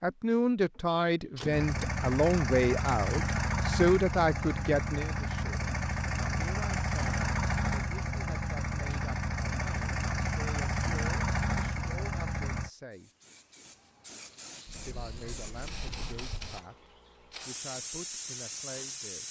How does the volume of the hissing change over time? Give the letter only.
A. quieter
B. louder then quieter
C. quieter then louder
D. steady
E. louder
E.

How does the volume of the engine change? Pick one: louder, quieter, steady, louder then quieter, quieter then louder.
steady.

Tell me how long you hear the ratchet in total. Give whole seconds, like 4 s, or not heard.
not heard.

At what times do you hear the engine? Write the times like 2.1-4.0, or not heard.
1.5-12.7.